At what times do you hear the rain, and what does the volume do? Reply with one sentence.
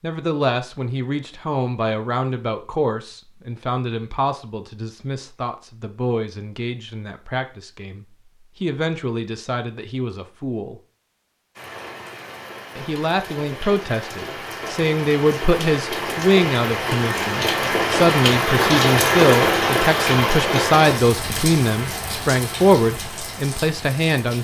You can hear the rain from 11.6 to 24.3 s, getting louder then quieter.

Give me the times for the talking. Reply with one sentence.
You can hear the talking from 0.0 to 10.8 s and from 12.8 to 24.3 s.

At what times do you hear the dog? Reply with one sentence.
The dog can't be heard in this clip.